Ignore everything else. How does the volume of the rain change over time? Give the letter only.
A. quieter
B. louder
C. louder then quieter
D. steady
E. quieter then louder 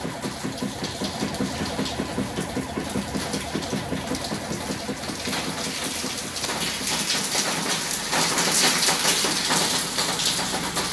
B.